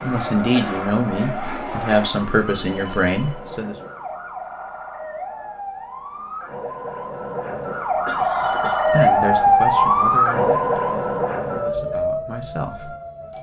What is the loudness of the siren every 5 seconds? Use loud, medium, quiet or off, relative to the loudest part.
quiet, loud, loud.